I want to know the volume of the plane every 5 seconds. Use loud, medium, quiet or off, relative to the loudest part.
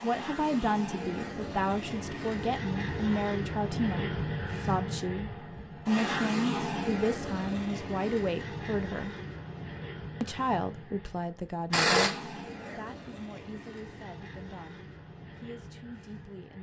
loud, loud, medium, quiet.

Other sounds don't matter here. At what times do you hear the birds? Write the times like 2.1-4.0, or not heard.
not heard.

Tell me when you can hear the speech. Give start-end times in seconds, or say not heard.
0.0-9.2, 10.2-12.1, 12.7-16.5.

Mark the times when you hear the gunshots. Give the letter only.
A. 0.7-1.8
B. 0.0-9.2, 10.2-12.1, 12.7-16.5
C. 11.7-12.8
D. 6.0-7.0
C.